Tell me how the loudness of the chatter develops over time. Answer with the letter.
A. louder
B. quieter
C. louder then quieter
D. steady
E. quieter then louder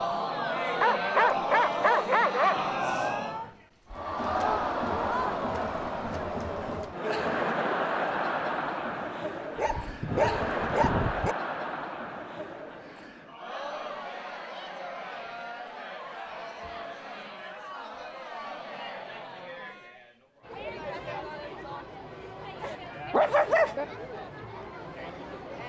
B.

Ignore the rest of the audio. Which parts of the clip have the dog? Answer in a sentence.
The dog can be heard from 0.8 to 2.6 s, from 9.6 to 11.3 s and from 22.6 to 23.9 s.